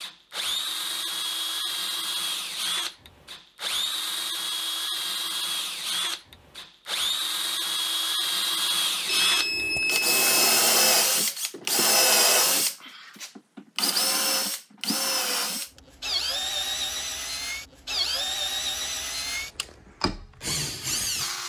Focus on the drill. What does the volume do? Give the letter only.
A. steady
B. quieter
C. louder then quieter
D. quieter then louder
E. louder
C.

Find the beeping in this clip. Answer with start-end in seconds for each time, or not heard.
9.1-10.6.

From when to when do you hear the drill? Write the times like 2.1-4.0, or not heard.
0.0-21.4.